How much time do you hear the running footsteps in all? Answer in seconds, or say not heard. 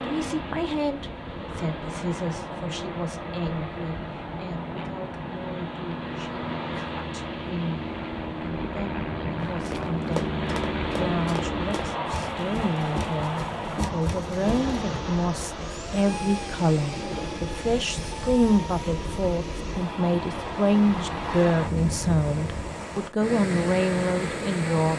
5 s.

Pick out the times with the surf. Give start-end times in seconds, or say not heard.
0.0-24.9.